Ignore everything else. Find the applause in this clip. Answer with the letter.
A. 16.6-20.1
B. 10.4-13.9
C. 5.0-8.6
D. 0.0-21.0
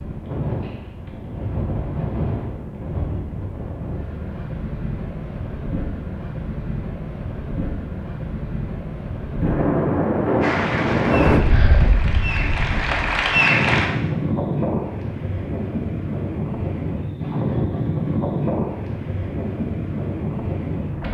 B.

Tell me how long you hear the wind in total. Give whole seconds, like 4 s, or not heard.
21 s.